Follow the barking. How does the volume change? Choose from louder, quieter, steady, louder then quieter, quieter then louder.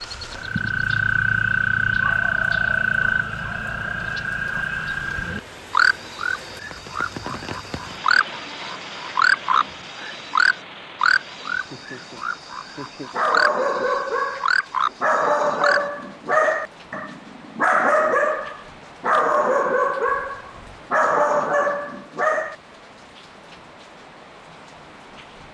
steady.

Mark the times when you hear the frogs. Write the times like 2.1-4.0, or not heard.
0.0-16.4.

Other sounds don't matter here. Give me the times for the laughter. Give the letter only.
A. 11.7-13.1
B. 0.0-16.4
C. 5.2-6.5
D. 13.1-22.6
A.